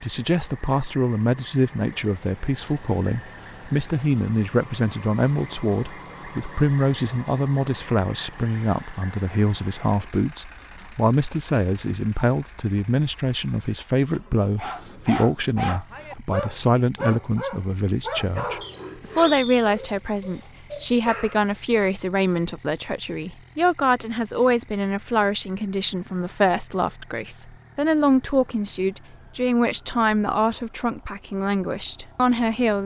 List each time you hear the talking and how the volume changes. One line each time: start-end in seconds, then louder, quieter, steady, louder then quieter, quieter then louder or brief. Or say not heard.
0.0-32.8 steady.